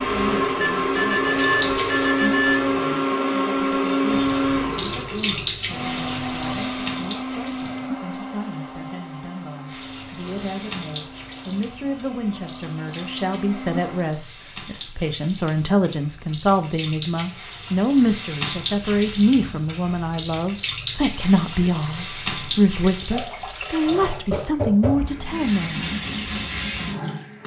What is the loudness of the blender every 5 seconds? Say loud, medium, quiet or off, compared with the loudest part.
loud, medium, quiet, off, off, off.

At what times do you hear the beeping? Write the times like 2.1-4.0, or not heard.
0.6-2.9.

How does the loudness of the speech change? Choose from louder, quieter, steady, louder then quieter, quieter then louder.
louder.